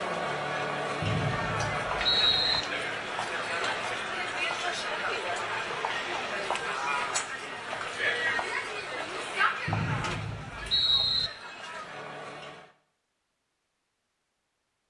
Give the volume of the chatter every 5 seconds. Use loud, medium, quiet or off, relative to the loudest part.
loud, loud, medium.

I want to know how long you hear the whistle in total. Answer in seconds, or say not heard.
3 s.